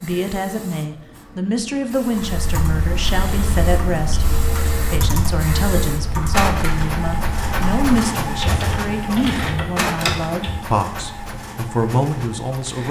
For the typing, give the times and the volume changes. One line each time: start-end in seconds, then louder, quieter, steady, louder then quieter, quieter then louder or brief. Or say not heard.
2.1-10.7 steady.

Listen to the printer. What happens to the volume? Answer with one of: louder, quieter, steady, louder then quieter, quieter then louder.
louder then quieter.